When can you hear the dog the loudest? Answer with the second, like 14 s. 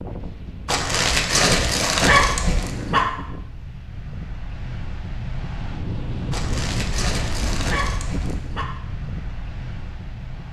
2 s.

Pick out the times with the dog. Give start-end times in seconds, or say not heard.
0.7-3.0, 6.3-8.7.